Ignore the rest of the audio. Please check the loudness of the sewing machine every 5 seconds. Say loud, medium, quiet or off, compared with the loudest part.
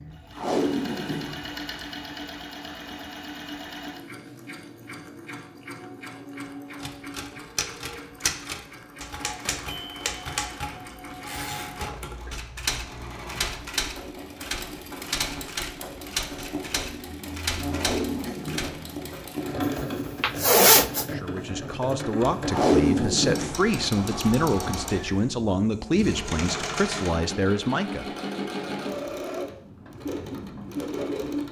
medium, medium, medium, loud, loud, loud, loud.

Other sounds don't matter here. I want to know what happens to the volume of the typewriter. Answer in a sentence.
The volume of the typewriter stays about the same.